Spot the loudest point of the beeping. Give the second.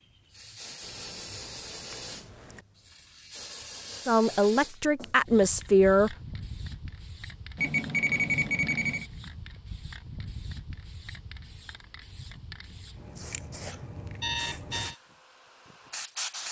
8 s.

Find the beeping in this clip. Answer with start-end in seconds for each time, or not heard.
0.8-2.6, 7.5-9.1, 13.7-14.9.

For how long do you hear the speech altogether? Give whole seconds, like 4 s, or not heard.
2 s.